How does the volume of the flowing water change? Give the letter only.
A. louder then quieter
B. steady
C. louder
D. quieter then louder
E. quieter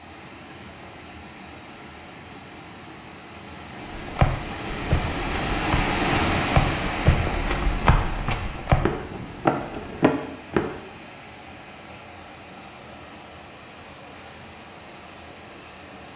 A.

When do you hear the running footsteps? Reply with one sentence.
You can hear the running footsteps from 3.9 to 10.8 s.